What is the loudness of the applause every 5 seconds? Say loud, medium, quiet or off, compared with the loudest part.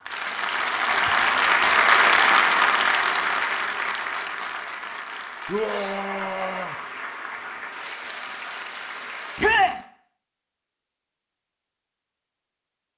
loud, quiet, off.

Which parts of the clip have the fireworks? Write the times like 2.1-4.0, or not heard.
not heard.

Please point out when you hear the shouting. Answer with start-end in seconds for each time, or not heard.
0.8-1.4, 5.5-6.8, 9.3-9.8.